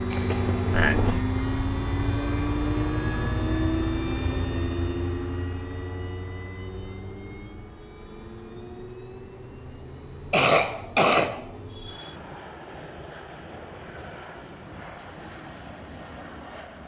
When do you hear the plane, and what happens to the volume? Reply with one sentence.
The plane can be heard from 0.0 to 16.8 s, getting quieter.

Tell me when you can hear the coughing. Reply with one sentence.
The coughing can be heard from 0.1 to 1.2 s and from 10.3 to 12.1 s.